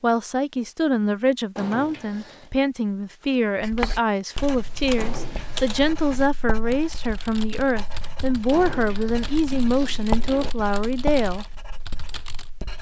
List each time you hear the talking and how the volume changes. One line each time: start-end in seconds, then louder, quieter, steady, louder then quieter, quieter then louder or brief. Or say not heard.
0.0-11.4 steady.